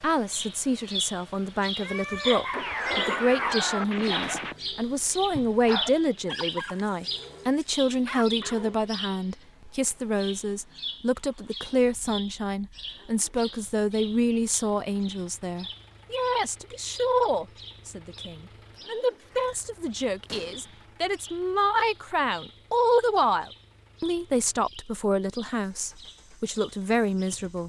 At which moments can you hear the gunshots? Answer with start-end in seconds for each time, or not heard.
2.5-4.5, 20.2-20.9.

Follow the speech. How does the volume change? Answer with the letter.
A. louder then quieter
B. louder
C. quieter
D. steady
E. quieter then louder
D.